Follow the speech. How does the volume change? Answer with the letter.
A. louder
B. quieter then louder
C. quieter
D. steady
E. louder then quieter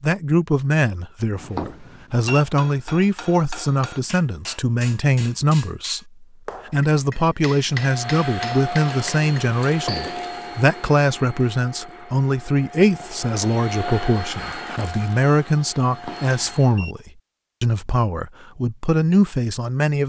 D.